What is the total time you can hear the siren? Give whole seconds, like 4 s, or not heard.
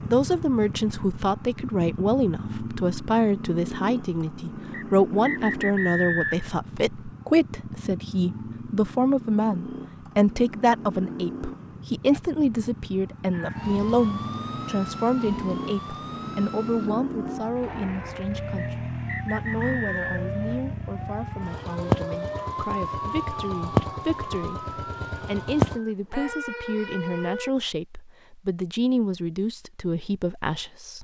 14 s.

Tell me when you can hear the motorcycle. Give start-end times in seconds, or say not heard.
0.0-25.8.